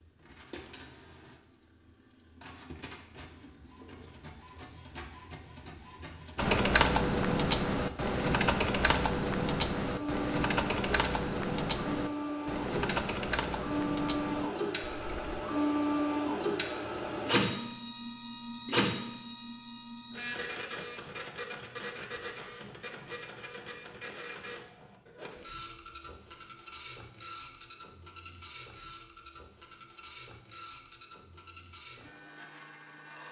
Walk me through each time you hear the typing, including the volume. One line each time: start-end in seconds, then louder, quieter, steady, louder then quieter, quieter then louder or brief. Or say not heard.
6.3-15.4 quieter.